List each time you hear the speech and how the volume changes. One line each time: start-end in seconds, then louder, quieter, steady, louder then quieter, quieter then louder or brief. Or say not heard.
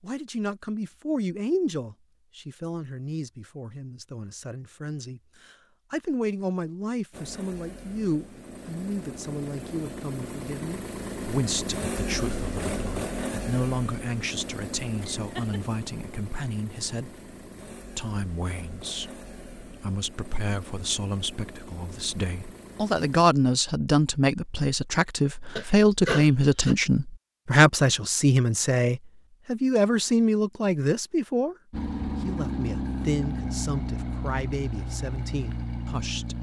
0.0-31.6 louder
32.2-36.3 quieter.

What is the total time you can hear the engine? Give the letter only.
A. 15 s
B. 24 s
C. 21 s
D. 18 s
C.